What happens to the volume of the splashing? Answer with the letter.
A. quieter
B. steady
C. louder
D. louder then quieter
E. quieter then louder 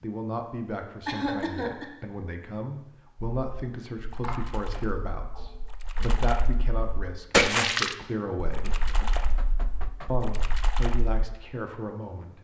D.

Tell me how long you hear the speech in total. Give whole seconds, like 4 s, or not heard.
11 s.